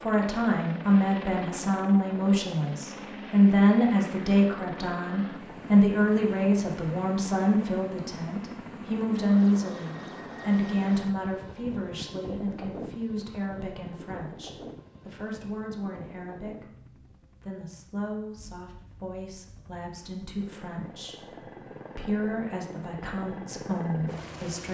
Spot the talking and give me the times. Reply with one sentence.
The talking can be heard from 0.0 to 24.6 s.